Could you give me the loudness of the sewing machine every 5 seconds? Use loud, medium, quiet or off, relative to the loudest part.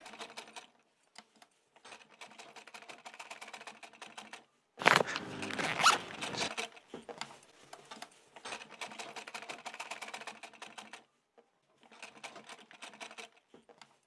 medium, loud, medium.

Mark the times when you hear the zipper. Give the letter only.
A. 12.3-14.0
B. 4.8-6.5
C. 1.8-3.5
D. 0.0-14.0
B.